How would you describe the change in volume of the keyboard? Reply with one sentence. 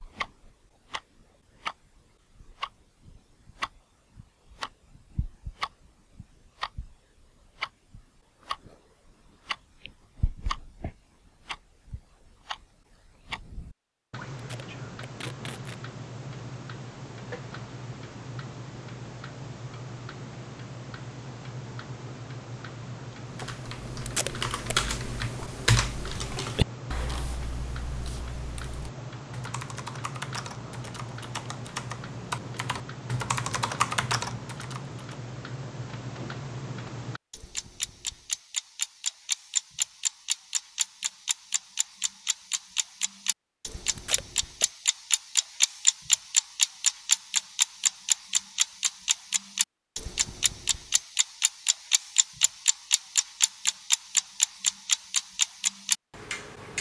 The volume of the keyboard goes down, then up.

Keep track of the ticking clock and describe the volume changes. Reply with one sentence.
The loudness of the ticking clock goes up.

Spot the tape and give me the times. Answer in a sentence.
You can hear the tape from 14.3 to 15.8 s, from 24.1 to 24.8 s and from 44.0 to 44.6 s.